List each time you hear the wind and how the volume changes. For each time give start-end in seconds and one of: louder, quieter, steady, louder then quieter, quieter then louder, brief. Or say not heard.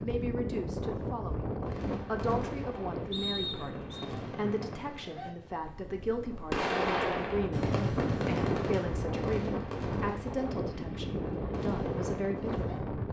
0.0-13.0 quieter then louder.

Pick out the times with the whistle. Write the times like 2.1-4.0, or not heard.
3.1-4.0.